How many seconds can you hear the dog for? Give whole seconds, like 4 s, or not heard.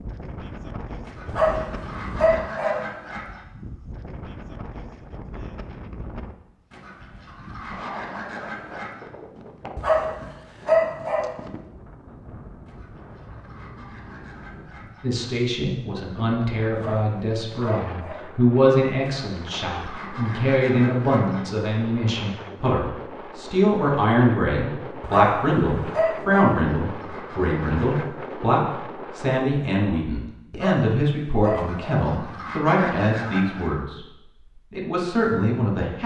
8 s.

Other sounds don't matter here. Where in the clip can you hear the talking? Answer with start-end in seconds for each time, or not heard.
15.0-34.0, 34.7-36.0.